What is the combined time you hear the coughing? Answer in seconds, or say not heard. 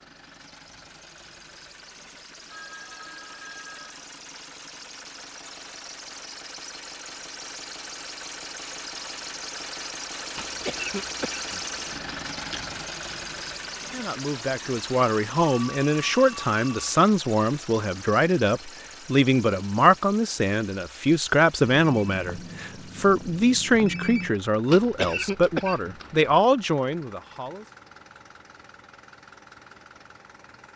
4 s.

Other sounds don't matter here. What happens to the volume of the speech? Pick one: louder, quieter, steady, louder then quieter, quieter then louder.
steady.